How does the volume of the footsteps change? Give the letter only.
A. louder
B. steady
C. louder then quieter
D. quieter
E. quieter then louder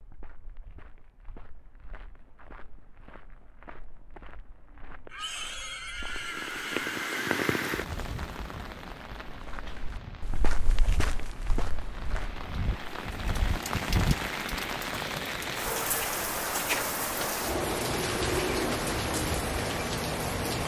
A.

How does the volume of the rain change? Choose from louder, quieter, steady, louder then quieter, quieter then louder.
quieter then louder.